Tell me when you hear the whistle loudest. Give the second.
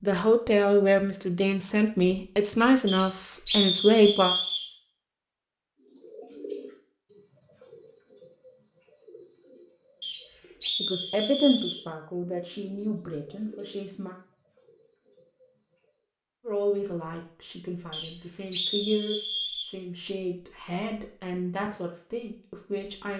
4 s.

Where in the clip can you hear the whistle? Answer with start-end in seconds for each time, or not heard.
2.9-4.7, 10.0-11.8, 17.9-19.7.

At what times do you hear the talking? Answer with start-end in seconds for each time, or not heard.
0.0-4.3, 10.8-14.2, 16.4-23.1.